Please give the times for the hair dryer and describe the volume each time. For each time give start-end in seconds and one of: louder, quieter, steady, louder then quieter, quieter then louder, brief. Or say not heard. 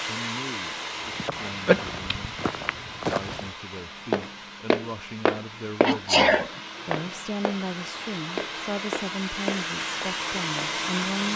0.0-11.3 quieter then louder.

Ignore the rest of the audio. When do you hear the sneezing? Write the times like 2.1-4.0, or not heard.
1.6-2.3, 5.8-6.5.